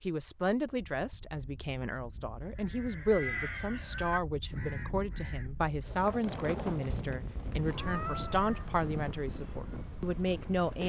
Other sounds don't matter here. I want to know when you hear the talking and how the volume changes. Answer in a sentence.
The talking can be heard from 0.1 to 10.8 s, at a steady volume.